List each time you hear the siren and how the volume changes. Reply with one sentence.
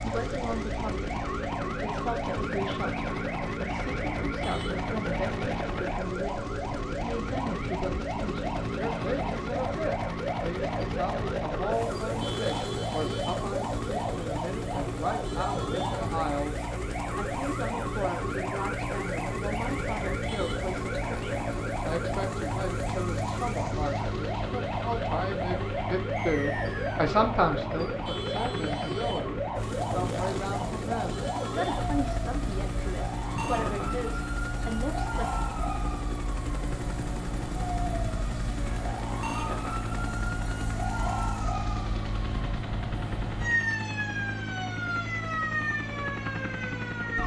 The siren can be heard from 0.0 to 47.2 s, at a steady volume.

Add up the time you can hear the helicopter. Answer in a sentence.
The helicopter can be heard for 47 seconds in total.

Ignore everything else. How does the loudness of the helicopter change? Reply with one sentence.
The volume of the helicopter stays about the same.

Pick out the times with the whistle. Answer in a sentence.
The whistle can be heard from 26.1 to 27.1 s.